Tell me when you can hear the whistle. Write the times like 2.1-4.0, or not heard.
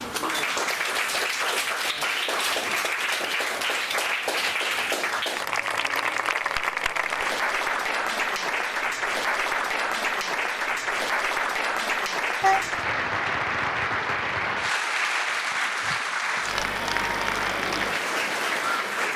not heard.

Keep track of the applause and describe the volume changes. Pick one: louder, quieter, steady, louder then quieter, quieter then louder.
steady.